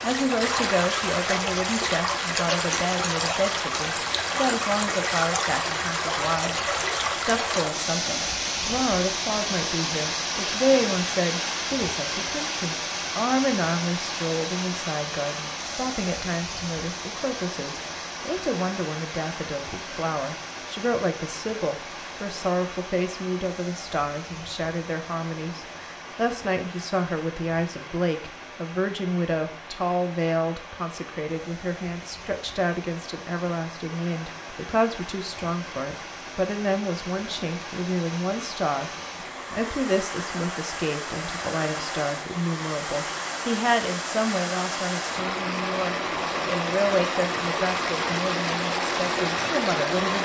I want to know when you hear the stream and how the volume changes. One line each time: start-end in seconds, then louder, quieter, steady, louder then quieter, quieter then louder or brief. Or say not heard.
0.0-50.1 quieter then louder.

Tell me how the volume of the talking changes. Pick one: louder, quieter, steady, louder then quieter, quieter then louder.
steady.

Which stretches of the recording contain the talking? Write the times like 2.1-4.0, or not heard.
0.0-50.1.